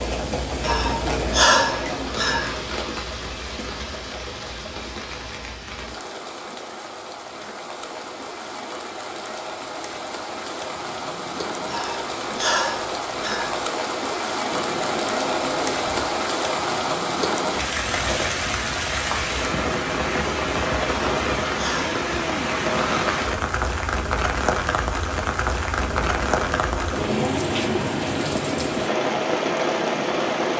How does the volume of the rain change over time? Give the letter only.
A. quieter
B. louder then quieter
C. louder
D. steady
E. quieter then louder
C.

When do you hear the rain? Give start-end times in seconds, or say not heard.
0.0-30.5.